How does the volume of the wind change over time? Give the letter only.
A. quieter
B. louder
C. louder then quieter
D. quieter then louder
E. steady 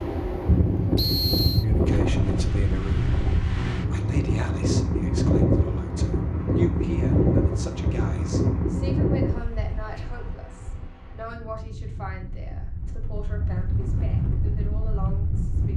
D.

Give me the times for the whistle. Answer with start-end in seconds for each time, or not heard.
0.9-1.6.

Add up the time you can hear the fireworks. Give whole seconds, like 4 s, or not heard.
not heard.